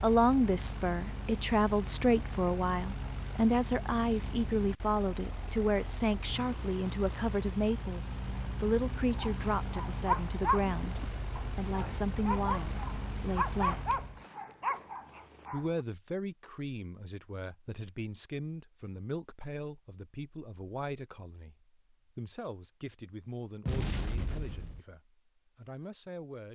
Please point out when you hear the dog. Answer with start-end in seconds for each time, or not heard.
9.2-15.7.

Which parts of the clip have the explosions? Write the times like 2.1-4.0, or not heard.
23.6-24.8.